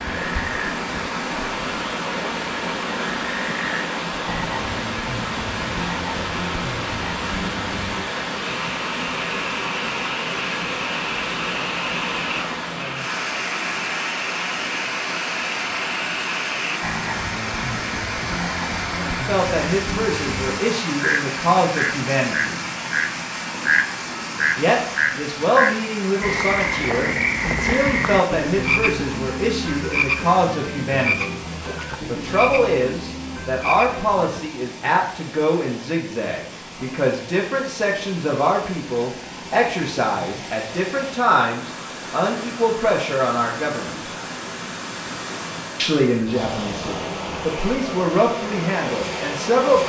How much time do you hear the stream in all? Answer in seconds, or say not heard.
50 s.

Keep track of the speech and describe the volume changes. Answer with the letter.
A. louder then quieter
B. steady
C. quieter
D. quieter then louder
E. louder
B.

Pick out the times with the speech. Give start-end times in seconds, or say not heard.
18.9-22.6, 24.6-31.4, 32.0-44.1, 45.8-49.8.